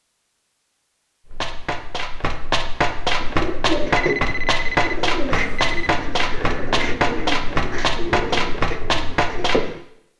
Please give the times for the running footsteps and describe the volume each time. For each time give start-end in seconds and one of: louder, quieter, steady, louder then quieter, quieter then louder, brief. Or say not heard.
1.2-9.6 steady.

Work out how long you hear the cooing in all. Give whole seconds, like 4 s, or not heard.
7 s.